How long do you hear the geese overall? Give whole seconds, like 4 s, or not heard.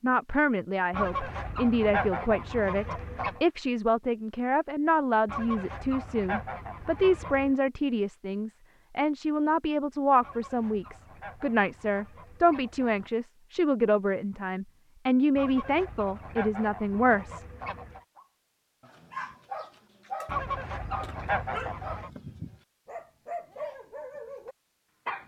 12 s.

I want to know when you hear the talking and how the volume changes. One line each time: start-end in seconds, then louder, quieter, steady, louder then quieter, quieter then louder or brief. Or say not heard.
0.0-17.4 steady.